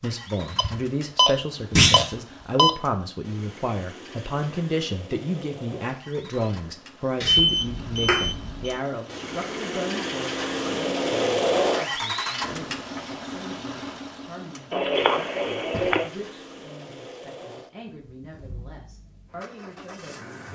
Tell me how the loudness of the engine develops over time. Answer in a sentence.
The volume of the engine goes up, then down.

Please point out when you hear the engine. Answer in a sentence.
You can hear the engine from 0.0 to 20.4 s.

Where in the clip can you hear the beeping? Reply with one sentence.
The beeping can be heard from 0.6 to 2.7 s, from 7.2 to 8.8 s and from 14.7 to 16.1 s.